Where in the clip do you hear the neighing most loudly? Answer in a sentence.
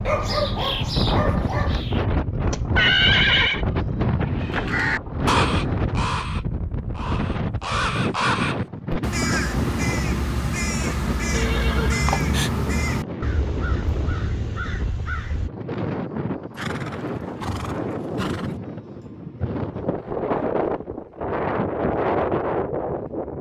The loudest moment of the neighing is at 3 seconds.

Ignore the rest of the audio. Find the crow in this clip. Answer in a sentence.
You can hear the crow from 4.4 to 15.5 s.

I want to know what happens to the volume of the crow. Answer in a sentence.
The loudness of the crow goes down.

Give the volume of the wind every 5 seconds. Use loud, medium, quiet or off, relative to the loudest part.
loud, loud, medium, medium, loud.